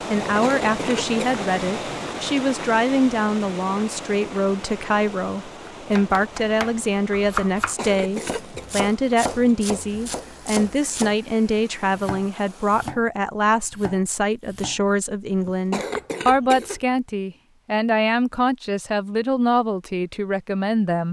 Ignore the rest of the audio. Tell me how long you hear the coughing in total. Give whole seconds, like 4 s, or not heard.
3 s.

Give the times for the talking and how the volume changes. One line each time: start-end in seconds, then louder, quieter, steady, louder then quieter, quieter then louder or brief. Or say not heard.
0.1-21.0 steady.